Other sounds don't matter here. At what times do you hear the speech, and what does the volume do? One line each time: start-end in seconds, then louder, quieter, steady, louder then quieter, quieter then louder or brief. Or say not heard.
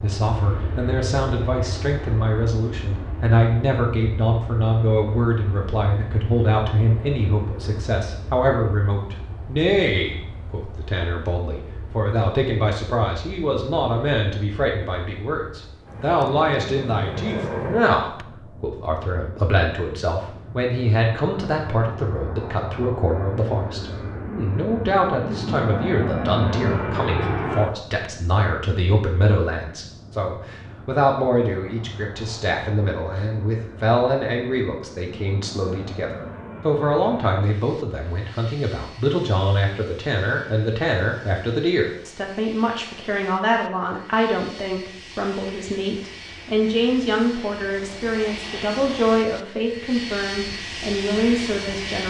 0.0-52.0 steady.